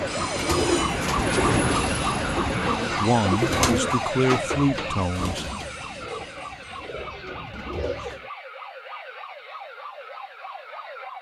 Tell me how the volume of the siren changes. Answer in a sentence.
The volume of the siren goes down.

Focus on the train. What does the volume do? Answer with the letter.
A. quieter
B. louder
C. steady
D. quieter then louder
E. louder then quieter
A.